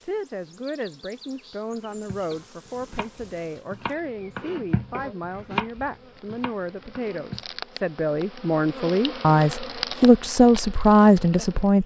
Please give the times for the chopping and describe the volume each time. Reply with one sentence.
You can hear the chopping from 1.7 to 7.5 s, getting louder then quieter.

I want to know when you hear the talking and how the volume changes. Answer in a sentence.
You can hear the talking from 0.0 to 11.8 s, getting louder.